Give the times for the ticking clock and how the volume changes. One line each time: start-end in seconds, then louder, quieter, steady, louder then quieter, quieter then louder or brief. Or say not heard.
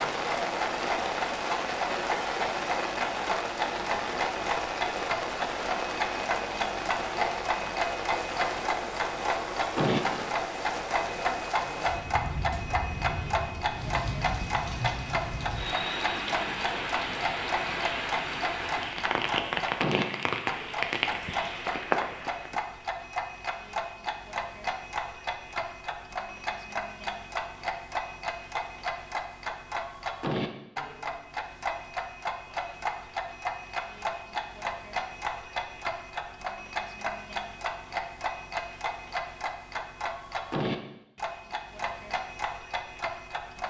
0.0-43.6 steady.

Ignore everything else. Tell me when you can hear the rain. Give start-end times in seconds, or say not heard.
0.0-22.6.